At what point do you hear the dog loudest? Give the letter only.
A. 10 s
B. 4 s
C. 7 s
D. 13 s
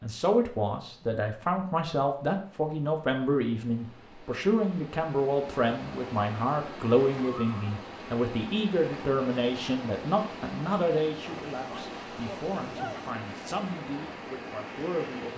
D.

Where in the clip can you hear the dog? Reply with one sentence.
The dog can be heard from 11.2 to 13.1 s.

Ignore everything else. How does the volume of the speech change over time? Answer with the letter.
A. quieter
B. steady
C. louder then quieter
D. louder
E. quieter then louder
A.